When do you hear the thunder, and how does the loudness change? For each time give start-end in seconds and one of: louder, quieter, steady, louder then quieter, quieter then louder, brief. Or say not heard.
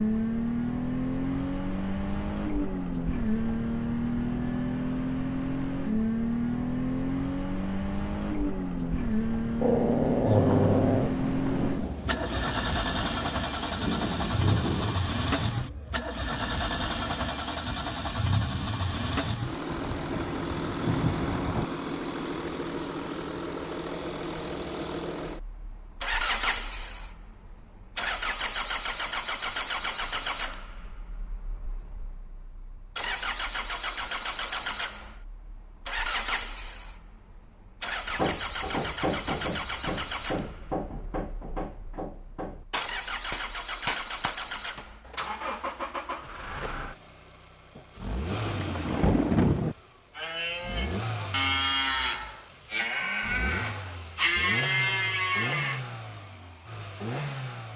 10.3-15.0 quieter then louder
19.7-21.6 brief
47.8-49.8 brief.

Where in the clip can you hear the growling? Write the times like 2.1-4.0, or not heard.
9.6-11.2.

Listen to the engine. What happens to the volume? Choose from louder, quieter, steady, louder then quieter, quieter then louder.
quieter.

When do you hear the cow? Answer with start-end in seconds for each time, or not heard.
50.1-55.8.